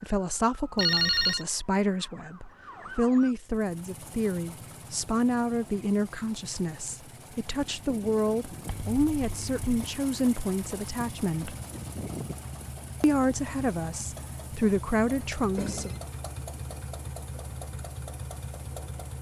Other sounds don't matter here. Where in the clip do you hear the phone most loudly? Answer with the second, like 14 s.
1 s.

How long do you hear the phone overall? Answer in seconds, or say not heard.
2 s.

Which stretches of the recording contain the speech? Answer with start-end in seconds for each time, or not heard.
0.0-11.6, 13.0-15.9.